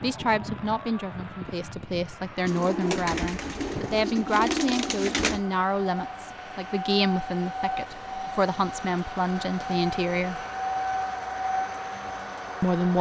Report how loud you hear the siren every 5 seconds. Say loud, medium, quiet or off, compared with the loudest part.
medium, loud, loud.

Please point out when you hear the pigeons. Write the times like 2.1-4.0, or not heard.
2.5-5.5.